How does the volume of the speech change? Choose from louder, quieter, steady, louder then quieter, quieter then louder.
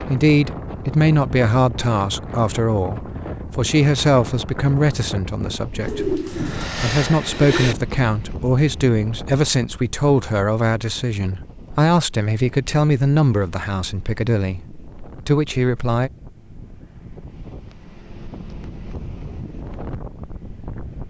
steady.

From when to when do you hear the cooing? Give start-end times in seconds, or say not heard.
5.8-7.8.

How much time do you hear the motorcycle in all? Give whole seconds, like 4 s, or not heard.
not heard.